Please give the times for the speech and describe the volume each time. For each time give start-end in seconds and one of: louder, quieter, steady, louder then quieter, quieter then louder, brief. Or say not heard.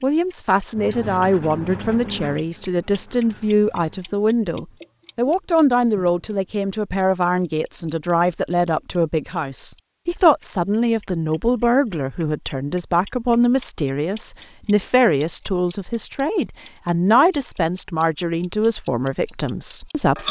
0.0-20.2 steady.